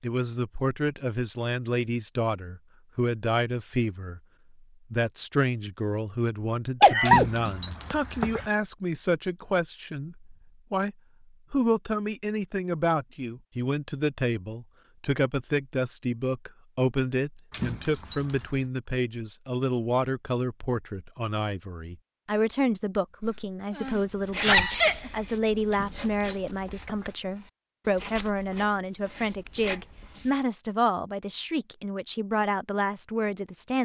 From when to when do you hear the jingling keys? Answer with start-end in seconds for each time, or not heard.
7.0-8.5, 17.5-18.7, 25.7-27.1.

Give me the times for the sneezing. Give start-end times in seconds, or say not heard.
6.8-8.0, 23.2-25.1.